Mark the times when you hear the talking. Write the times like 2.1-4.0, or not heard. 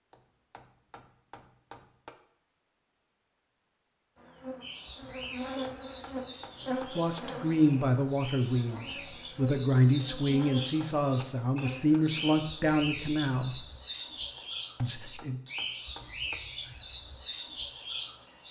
6.9-13.6, 14.8-15.3.